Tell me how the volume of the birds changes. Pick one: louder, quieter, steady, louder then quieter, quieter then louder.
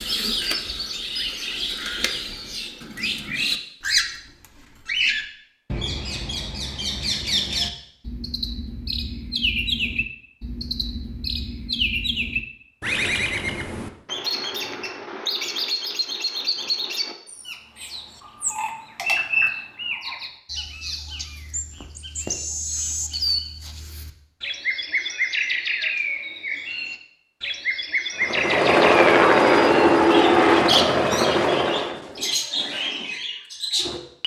steady.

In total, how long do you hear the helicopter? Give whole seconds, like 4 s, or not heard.
4 s.